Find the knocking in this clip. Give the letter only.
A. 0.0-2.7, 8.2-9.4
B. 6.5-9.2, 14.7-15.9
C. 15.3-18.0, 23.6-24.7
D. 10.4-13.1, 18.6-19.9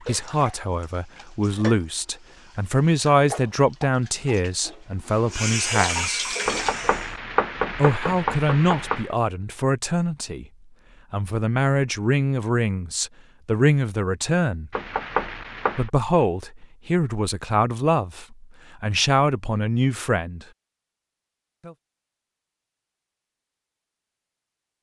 B.